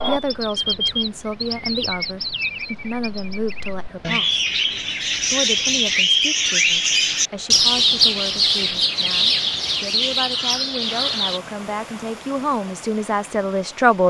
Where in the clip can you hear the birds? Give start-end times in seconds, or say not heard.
0.0-11.4.